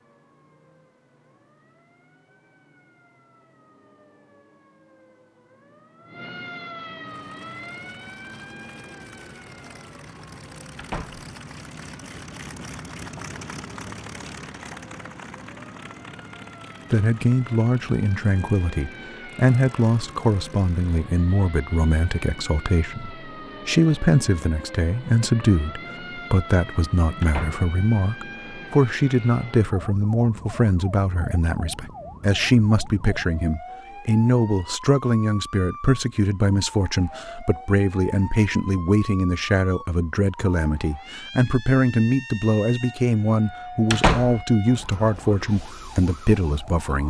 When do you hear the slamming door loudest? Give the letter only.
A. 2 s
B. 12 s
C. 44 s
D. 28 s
C.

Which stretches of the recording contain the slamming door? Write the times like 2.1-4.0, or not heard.
10.8-11.2, 27.2-27.6, 43.9-44.5.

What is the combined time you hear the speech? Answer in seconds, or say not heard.
30 s.